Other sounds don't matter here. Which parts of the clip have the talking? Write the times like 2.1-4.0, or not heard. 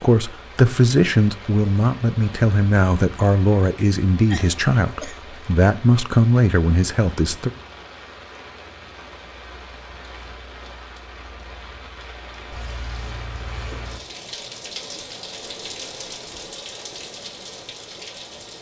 0.0-7.5.